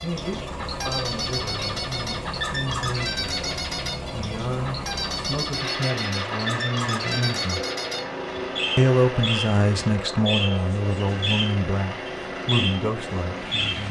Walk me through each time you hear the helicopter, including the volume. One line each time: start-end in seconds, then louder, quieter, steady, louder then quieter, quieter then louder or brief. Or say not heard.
0.0-13.8 steady.